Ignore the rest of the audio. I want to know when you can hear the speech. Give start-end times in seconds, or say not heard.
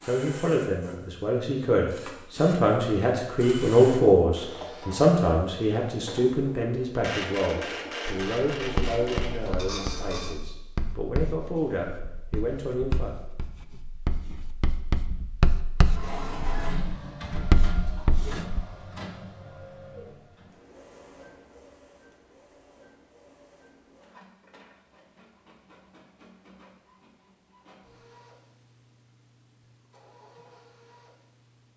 0.1-13.2.